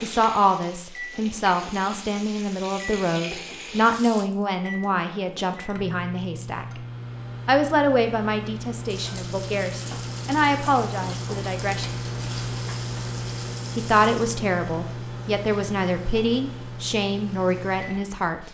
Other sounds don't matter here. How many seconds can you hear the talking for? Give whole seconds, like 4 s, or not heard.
16 s.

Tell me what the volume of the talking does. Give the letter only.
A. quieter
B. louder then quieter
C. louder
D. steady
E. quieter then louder
D.